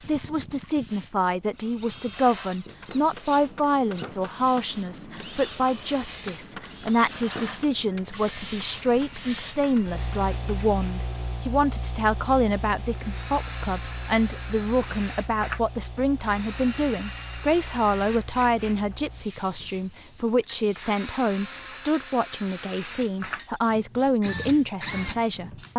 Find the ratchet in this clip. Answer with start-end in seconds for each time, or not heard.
not heard.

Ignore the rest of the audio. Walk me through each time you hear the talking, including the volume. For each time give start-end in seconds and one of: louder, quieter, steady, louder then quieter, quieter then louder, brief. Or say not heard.
0.1-25.7 steady.